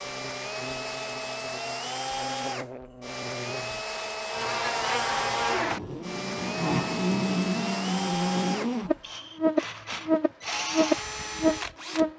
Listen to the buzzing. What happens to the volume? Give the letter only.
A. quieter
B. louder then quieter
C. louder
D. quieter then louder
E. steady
C.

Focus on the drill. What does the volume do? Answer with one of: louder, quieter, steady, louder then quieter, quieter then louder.
steady.